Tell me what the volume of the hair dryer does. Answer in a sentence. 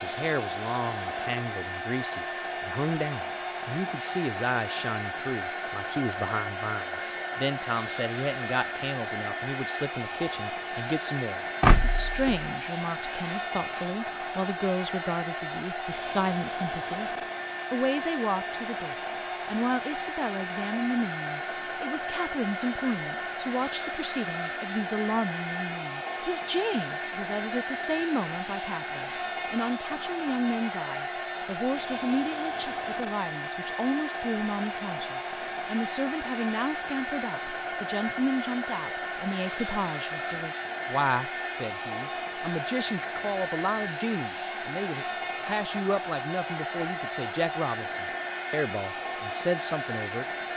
The volume of the hair dryer stays about the same.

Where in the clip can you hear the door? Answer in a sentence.
The door can be heard from 11.6 to 12.4 s.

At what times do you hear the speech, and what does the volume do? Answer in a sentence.
You can hear the speech from 0.0 to 17.1 s, at a steady volume; and from 17.7 to 50.2 s, at a steady volume.